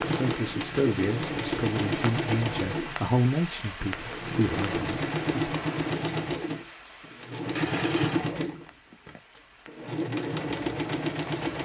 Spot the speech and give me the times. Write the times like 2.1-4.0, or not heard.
0.1-5.5.